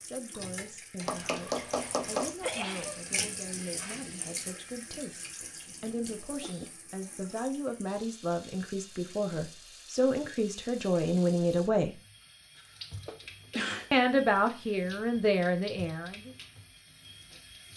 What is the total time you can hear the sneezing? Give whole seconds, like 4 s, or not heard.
3 s.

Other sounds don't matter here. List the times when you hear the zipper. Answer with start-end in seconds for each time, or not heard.
not heard.